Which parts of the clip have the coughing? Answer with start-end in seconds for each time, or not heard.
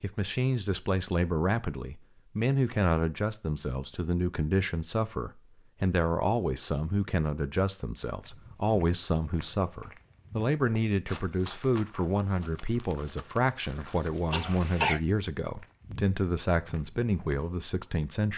14.3-15.0.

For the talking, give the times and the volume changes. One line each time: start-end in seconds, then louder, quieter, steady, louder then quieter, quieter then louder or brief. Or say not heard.
0.0-18.3 steady.